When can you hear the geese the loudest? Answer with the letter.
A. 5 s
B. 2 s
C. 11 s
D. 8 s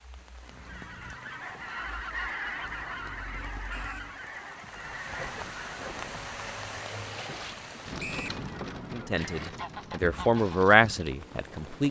B.